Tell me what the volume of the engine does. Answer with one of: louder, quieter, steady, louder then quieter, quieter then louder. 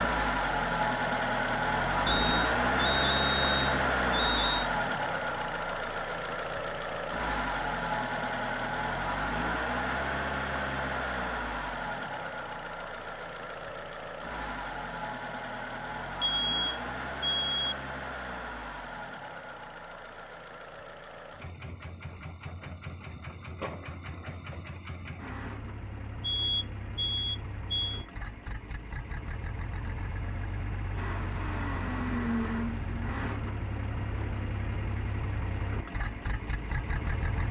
quieter then louder.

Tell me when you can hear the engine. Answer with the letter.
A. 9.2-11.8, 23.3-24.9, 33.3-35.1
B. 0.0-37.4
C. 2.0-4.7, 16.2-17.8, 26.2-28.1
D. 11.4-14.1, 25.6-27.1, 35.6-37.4
B.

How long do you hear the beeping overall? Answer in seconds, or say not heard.
6 s.